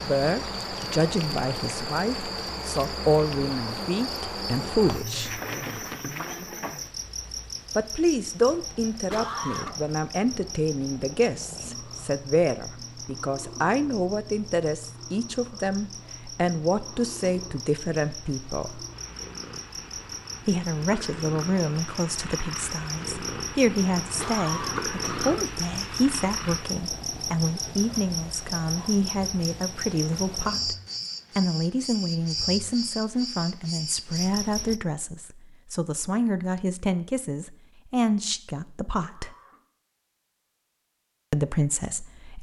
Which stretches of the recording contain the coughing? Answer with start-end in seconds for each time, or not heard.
9.1-9.8, 24.1-25.6, 39.0-39.6.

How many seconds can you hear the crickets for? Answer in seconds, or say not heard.
35 s.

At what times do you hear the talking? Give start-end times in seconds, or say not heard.
0.0-5.3, 7.8-18.8, 20.4-30.8, 31.4-39.3, 41.3-42.3.